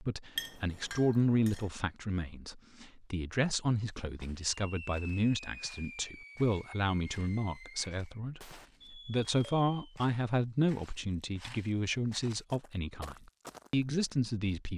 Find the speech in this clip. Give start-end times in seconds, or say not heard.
0.0-14.7.